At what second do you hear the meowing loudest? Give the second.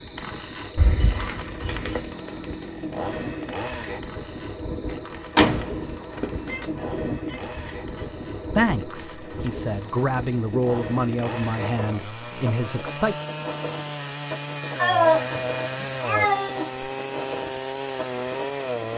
15 s.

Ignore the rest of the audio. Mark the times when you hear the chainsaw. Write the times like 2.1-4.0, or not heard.
0.0-18.9.